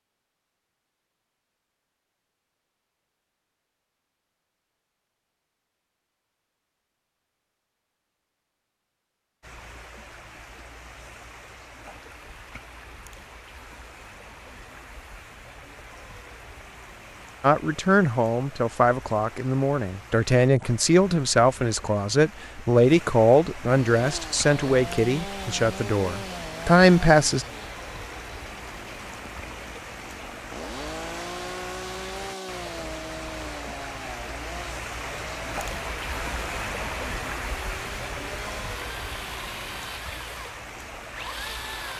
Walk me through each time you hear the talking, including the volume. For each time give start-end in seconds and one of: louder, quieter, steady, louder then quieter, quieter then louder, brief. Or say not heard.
17.4-27.4 steady.